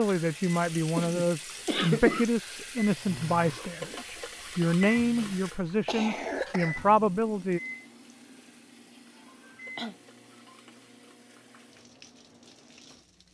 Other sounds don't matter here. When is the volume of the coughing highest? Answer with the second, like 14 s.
2 s.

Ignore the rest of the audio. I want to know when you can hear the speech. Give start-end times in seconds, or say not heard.
0.0-7.6.